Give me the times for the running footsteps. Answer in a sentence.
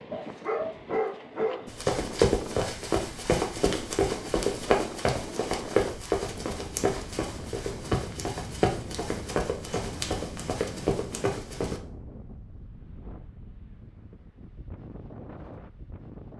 You can hear the running footsteps from 1.6 to 11.8 s.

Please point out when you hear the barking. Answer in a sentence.
You can hear the barking from 0.1 to 1.6 s.